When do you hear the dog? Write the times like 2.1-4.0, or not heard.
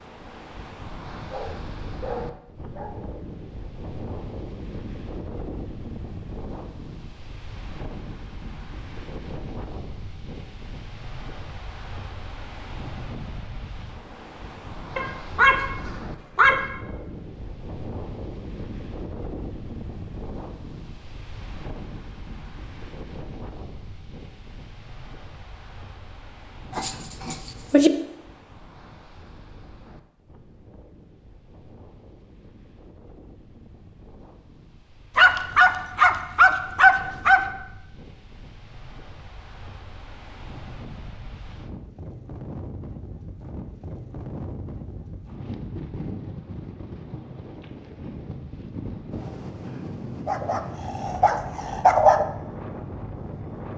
1.3-3.0, 14.9-16.7, 26.7-27.9, 35.1-37.4, 50.2-52.2.